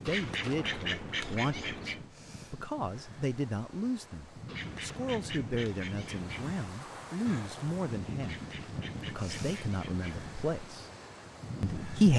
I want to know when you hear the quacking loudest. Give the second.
1 s.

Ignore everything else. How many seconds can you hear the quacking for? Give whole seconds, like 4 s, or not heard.
6 s.